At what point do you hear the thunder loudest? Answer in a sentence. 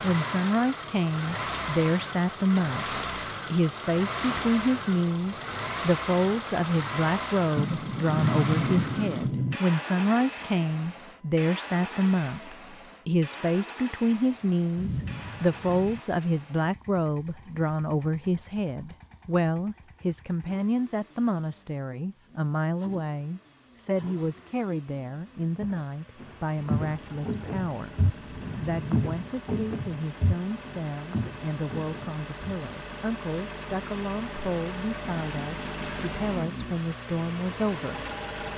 The loudest moment of the thunder is at 8 seconds.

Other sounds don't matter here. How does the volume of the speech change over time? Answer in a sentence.
The volume of the speech goes down.